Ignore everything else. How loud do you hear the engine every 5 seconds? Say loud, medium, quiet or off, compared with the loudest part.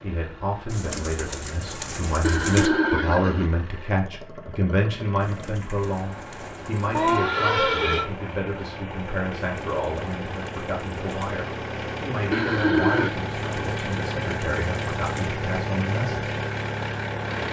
quiet, medium, loud, loud.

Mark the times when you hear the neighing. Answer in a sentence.
The neighing can be heard from 2.2 to 3.5 s, from 7.0 to 8.1 s and from 12.3 to 13.2 s.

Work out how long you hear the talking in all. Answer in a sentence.
The talking can be heard for 16 seconds in total.